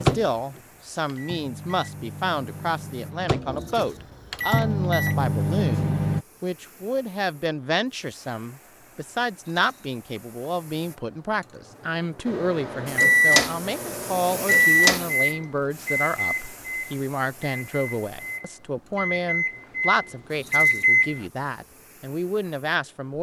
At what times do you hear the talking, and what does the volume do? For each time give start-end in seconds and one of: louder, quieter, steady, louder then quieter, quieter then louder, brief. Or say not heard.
0.0-23.1 steady.